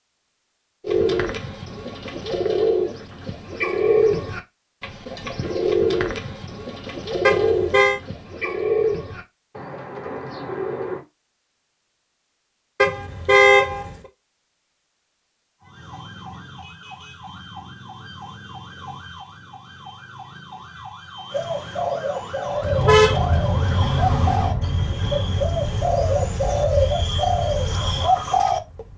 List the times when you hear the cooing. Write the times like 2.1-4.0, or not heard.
0.8-11.1, 21.3-28.9.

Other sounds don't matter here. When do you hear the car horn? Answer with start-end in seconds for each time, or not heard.
7.2-8.0, 12.8-13.9, 22.6-24.6.